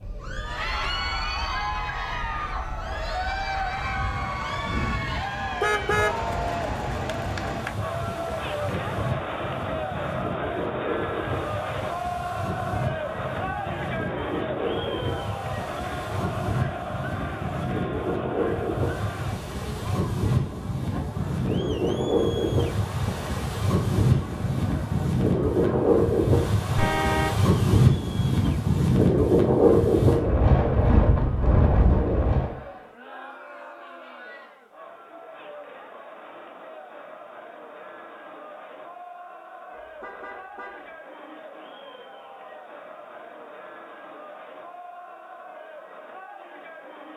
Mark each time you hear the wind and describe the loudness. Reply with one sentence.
You can hear the wind from 0.0 to 32.5 s, getting louder.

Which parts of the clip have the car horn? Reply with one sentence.
The car horn can be heard from 5.6 to 6.3 s, from 26.8 to 27.4 s and from 39.8 to 40.9 s.